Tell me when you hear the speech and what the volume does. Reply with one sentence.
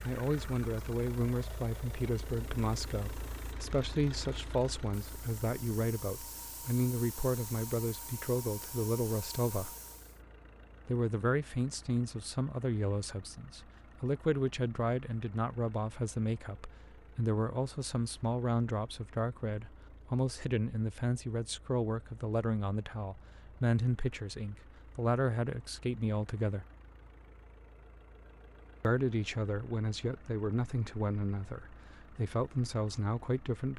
The speech can be heard from 0.0 to 9.7 s, at a steady volume; from 10.8 to 26.6 s, at a steady volume; and from 28.8 to 33.7 s, at a steady volume.